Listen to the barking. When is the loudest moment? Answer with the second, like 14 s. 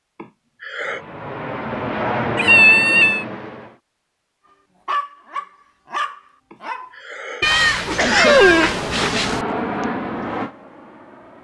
8 s.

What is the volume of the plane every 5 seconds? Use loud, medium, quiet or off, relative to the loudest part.
loud, loud, medium.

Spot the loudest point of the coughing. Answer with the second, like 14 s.
8 s.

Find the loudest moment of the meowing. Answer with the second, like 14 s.
3 s.